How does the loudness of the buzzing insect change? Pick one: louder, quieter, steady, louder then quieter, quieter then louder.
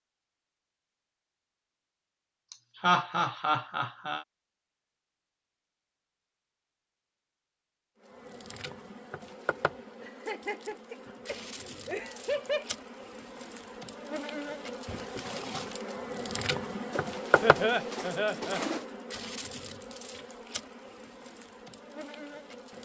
louder then quieter.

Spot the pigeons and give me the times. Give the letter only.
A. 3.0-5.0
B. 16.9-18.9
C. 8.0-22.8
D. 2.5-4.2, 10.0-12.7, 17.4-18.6
B.